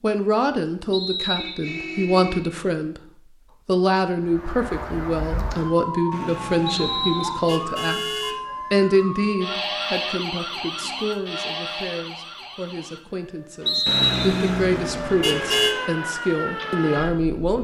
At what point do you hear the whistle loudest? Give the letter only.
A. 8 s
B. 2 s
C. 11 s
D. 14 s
D.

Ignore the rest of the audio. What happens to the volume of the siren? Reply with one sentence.
The volume of the siren goes down, then up.